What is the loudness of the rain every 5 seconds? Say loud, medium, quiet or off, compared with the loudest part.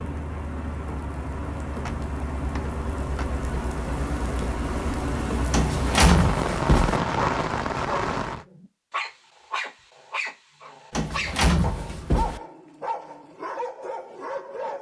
medium, loud, off.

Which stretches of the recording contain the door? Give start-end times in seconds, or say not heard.
1.7-3.3, 5.5-7.0, 10.9-12.4.